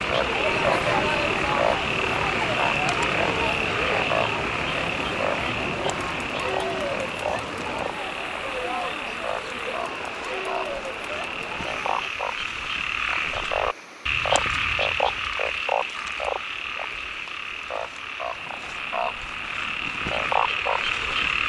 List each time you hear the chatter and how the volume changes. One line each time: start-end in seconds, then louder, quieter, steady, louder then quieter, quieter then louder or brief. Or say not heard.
0.0-12.1 quieter.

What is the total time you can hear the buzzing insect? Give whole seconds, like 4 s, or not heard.
not heard.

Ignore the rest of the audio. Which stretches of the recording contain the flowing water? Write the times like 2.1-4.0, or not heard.
0.0-21.4.